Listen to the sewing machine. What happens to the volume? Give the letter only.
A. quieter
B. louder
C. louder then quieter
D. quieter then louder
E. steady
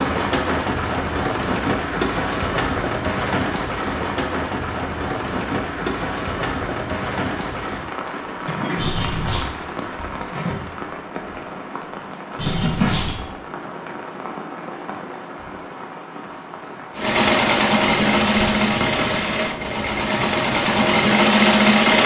D.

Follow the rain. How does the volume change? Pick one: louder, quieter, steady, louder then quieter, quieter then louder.
quieter.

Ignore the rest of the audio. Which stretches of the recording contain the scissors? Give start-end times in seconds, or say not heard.
8.8-9.4, 12.3-13.2.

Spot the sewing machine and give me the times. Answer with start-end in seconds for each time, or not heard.
16.9-22.0.